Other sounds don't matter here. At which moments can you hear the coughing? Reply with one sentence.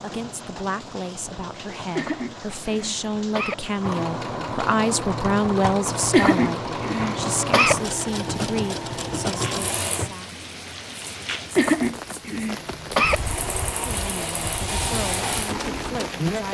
The coughing can be heard from 1.9 to 3.5 s, from 6.1 to 7.8 s and from 11.6 to 13.2 s.